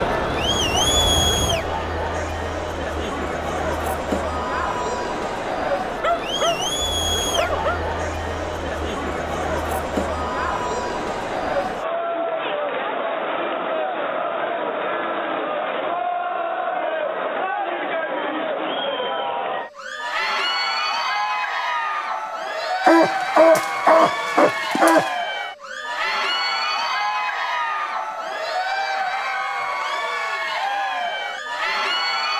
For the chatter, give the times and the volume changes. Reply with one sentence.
You can hear the chatter from 0.0 to 32.3 s, at a steady volume.